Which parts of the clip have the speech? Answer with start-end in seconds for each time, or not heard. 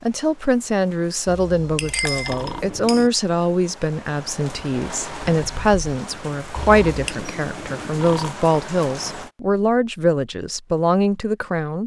0.0-11.8.